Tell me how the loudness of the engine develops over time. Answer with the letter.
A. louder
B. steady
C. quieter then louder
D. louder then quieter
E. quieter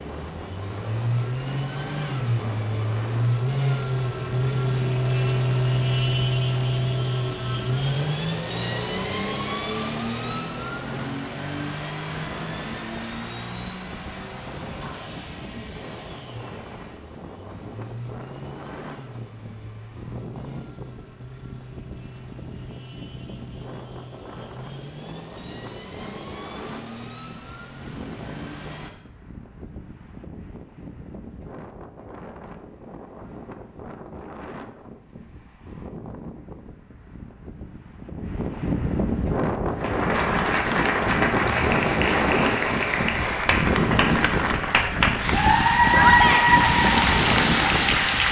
E.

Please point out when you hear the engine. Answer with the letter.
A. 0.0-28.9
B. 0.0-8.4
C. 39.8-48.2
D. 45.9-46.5
A.